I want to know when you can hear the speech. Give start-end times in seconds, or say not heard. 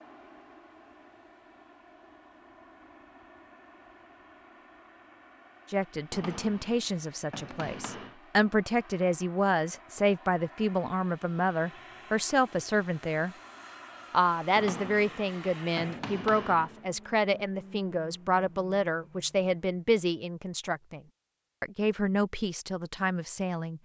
5.7-13.3, 14.1-21.0, 21.6-23.7.